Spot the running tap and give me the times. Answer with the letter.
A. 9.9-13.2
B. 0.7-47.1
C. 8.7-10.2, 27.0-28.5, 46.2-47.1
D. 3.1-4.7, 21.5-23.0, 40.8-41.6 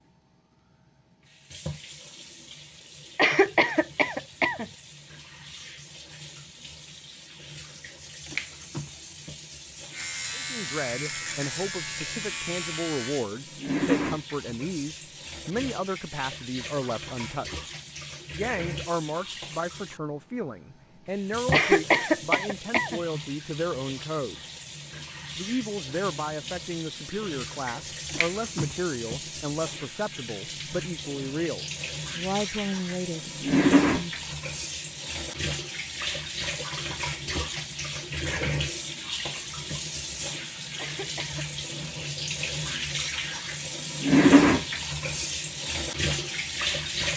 B.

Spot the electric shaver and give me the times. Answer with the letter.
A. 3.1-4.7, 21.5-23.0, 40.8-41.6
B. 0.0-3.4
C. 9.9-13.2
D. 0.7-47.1
C.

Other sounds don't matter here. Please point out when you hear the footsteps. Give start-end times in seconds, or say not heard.
not heard.